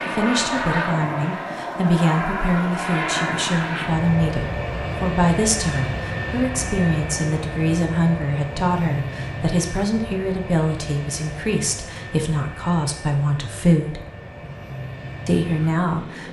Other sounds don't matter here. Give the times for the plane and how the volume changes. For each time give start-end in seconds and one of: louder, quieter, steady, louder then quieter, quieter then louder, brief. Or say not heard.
0.0-16.2 quieter.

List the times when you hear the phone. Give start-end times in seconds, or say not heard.
not heard.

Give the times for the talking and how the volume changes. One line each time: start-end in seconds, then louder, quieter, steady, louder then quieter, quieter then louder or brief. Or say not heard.
0.0-14.0 steady
15.2-16.2 brief.